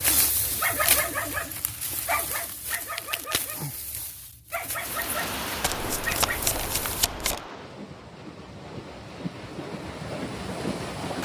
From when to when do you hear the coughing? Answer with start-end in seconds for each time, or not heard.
not heard.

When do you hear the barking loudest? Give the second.
1 s.